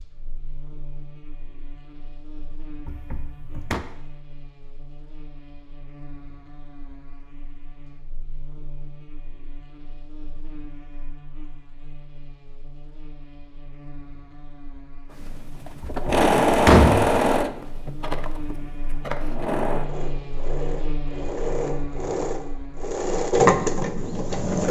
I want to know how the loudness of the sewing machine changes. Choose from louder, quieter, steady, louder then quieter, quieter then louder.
quieter then louder.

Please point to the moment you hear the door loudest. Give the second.
17 s.